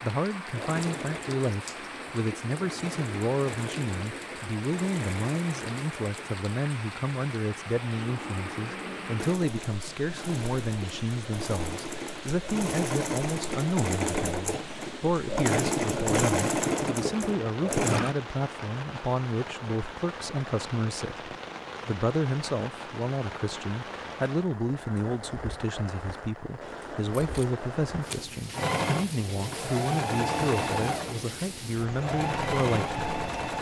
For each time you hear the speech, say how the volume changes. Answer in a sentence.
You can hear the speech from 0.0 to 33.2 s, at a steady volume.